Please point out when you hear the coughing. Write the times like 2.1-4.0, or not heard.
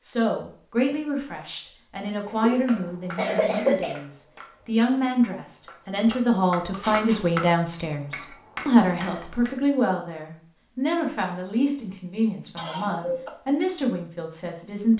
2.3-4.0, 12.6-13.3.